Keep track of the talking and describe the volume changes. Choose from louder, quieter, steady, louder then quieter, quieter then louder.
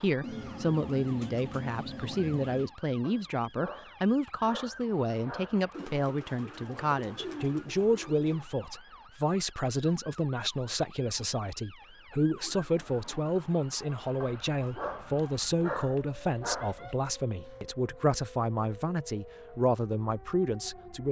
steady.